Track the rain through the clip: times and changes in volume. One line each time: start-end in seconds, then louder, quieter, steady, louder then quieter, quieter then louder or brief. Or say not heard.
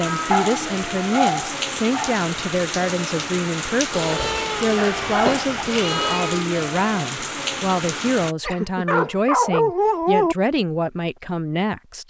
0.0-8.3 steady.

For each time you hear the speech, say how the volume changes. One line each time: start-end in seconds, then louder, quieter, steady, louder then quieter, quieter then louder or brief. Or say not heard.
0.0-12.0 steady.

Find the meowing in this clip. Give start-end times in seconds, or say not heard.
3.9-6.5.